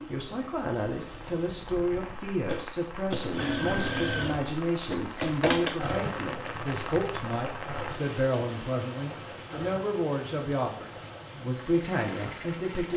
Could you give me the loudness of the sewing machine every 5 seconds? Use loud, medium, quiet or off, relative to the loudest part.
loud, loud, medium.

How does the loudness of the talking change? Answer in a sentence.
The volume of the talking stays about the same.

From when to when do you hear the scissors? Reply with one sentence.
The scissors can't be heard in this clip.